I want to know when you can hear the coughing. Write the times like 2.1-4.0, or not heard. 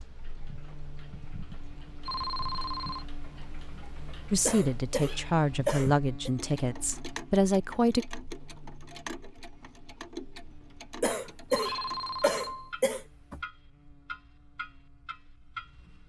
4.5-6.3, 11.0-13.4.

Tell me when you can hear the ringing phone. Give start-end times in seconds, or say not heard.
2.0-3.0, 11.5-12.8.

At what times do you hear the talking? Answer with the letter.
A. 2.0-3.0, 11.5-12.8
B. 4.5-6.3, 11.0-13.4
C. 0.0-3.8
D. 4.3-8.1
D.